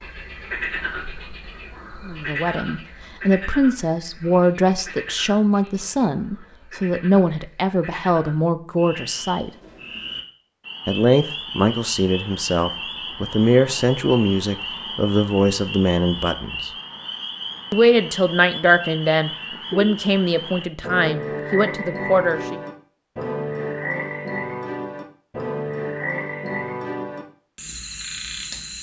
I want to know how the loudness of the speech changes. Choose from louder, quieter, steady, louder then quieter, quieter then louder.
steady.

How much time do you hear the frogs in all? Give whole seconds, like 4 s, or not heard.
29 s.